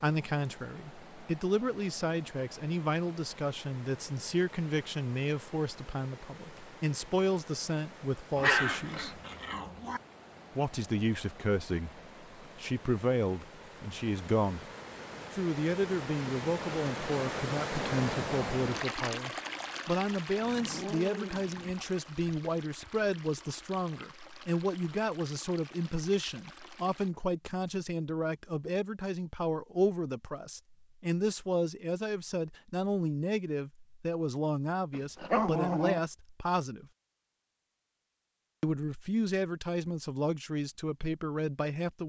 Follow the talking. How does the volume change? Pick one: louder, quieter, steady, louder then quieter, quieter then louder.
steady.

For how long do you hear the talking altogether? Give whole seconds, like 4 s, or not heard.
38 s.